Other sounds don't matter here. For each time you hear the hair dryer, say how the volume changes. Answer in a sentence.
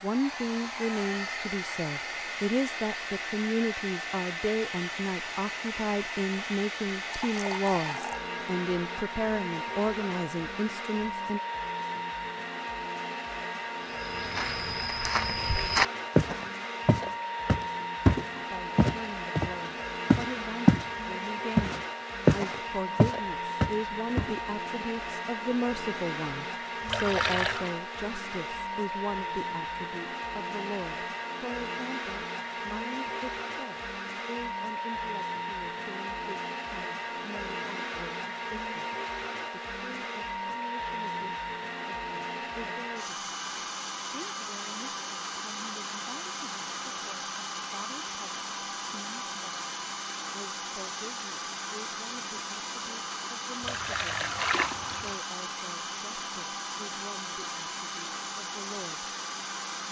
You can hear the hair dryer from 0.0 to 59.8 s, at a steady volume.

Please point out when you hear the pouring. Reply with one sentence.
The pouring can be heard from 7.2 to 8.2 s, from 26.9 to 27.7 s and from 53.6 to 55.2 s.